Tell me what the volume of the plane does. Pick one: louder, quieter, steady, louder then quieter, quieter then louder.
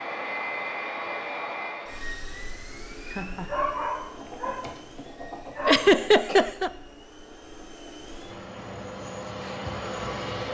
quieter then louder.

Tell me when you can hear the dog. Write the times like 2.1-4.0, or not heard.
3.5-6.3.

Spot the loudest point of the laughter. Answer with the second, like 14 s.
6 s.